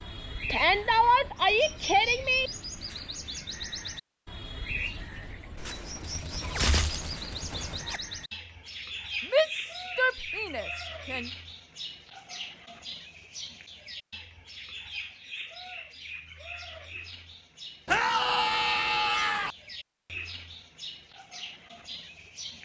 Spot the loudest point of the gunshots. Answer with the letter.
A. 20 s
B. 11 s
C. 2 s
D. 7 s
D.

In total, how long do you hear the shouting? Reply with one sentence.
The shouting can be heard for 6 seconds in total.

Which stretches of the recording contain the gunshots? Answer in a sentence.
The gunshots can be heard from 5.5 to 8.0 s.